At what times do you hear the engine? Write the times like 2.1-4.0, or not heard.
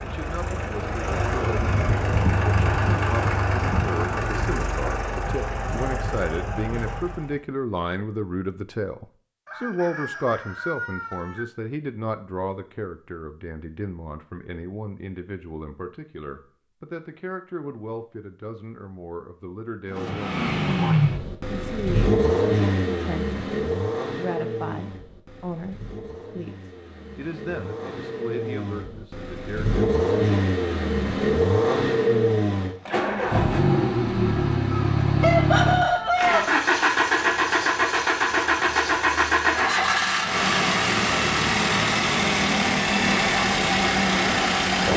0.0-7.4, 19.9-44.9.